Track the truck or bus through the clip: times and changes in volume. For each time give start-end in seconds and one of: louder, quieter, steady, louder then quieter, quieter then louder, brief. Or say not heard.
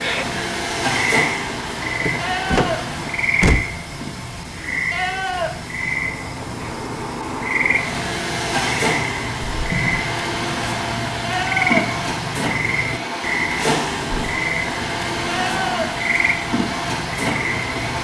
0.0-17.9 quieter then louder.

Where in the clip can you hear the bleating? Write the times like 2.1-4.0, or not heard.
2.2-2.9, 4.9-5.6, 11.2-11.9, 15.2-16.0.